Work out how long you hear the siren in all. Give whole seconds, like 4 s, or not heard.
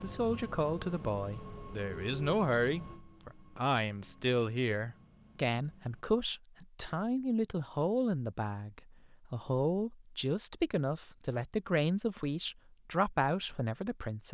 not heard.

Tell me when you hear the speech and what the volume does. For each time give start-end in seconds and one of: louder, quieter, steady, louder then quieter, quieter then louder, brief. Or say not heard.
0.0-14.2 steady.